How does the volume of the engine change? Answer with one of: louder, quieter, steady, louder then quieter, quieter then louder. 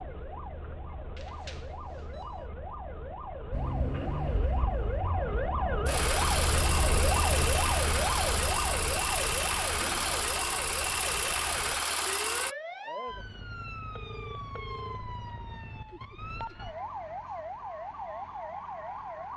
louder.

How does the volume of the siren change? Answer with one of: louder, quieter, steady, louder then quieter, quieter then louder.
louder then quieter.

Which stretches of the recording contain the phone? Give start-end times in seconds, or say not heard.
1.1-2.5, 13.9-15.0.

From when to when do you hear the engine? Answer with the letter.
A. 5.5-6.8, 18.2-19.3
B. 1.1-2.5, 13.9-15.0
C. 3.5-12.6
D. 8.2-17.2
C.